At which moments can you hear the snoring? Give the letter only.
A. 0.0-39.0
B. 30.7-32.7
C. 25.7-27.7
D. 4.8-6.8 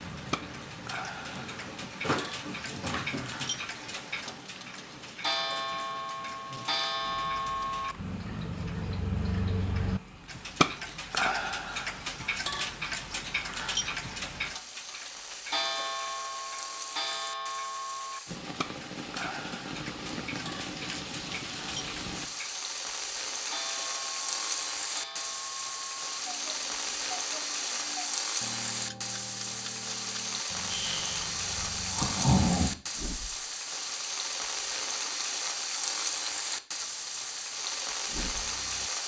B.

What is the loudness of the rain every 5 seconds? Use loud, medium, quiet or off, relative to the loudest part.
medium, quiet, quiet, medium, loud, loud, loud, loud.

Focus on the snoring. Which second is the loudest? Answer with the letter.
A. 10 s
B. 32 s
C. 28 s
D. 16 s
B.